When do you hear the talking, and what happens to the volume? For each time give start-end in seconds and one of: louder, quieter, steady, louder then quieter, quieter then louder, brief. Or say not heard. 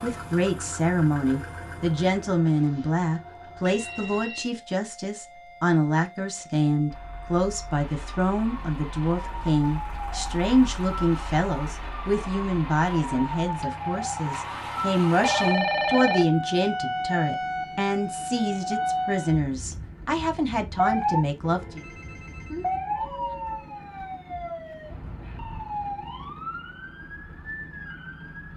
0.0-21.9 steady.